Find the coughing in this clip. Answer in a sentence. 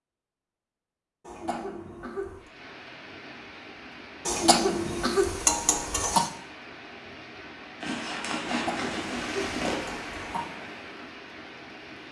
You can hear the coughing from 1.2 to 2.5 s, from 4.2 to 6.3 s and from 8.4 to 10.5 s.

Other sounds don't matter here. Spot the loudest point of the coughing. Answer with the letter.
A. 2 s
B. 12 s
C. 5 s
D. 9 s
C.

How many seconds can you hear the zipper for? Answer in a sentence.
You can hear the zipper for 2 seconds altogether.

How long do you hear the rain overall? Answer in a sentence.
You can hear the rain for 10 seconds altogether.